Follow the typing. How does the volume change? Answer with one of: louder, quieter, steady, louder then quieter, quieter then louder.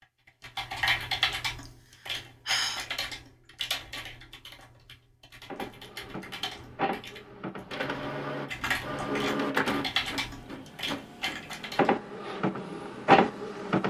quieter then louder.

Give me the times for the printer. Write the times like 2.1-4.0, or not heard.
5.5-13.8.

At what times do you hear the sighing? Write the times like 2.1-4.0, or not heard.
1.6-2.9.